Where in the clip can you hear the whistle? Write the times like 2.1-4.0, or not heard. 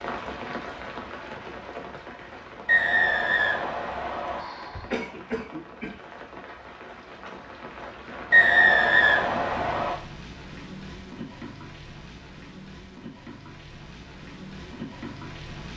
2.6-4.4, 8.3-9.9.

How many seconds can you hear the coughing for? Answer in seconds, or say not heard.
2 s.